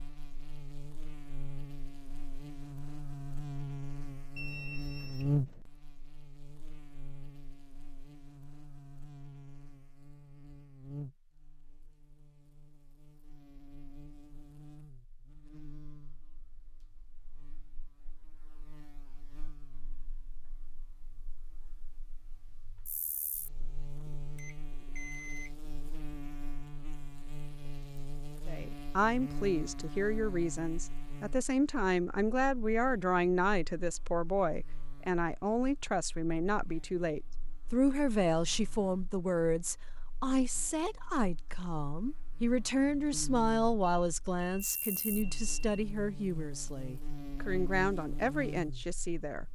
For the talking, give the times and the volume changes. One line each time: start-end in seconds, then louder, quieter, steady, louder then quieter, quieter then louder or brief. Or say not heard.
28.4-49.5 steady.